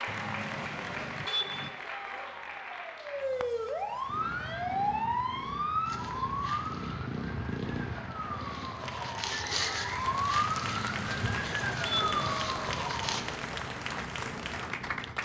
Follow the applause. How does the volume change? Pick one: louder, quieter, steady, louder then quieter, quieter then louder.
quieter then louder.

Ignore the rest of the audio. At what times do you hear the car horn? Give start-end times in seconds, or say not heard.
0.1-1.7, 10.7-12.3.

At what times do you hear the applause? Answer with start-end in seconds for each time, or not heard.
0.0-15.2.